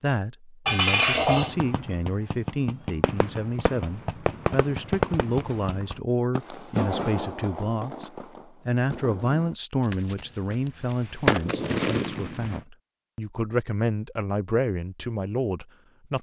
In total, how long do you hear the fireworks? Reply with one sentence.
The fireworks can be heard for 11 seconds in total.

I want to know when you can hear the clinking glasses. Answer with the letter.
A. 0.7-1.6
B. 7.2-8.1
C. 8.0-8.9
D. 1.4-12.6
A.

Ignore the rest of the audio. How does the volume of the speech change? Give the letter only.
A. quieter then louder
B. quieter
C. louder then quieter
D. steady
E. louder
D.